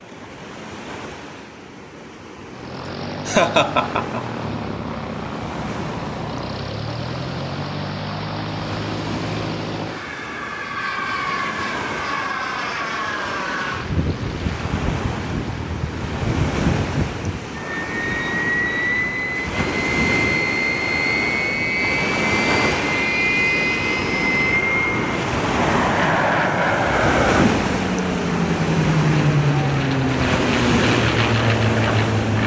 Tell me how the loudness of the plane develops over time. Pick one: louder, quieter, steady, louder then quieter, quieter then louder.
louder.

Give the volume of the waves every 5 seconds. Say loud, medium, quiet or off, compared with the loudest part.
quiet, quiet, medium, medium, loud, loud, loud.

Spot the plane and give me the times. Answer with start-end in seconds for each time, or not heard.
2.4-32.4.